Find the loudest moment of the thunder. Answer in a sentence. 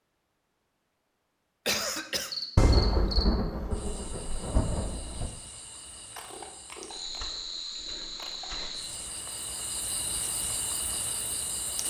The volume of the thunder peaks at 3 seconds.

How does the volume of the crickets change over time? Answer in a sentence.
The loudness of the crickets goes down, then up.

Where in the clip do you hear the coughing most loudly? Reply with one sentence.
The loudest moment of the coughing is at 2 seconds.